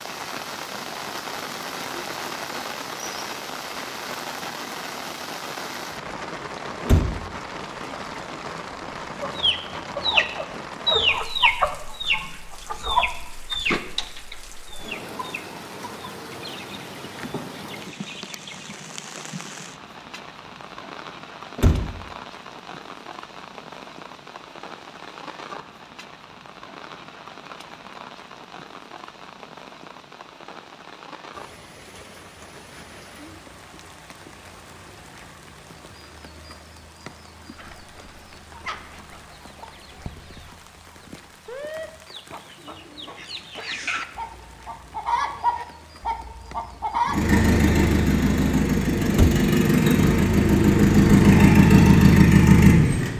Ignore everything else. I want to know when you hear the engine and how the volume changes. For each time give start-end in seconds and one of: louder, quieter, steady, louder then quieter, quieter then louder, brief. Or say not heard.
47.0-53.1 louder.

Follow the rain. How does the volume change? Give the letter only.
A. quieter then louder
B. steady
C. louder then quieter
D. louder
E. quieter
E.